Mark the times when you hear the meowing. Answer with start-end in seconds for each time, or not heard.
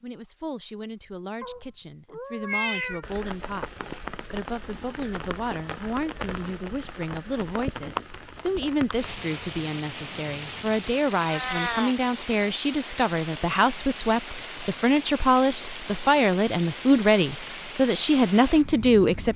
1.4-3.0, 11.2-11.9.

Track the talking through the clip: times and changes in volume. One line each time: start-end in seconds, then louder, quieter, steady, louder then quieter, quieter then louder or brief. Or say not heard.
0.0-19.3 louder.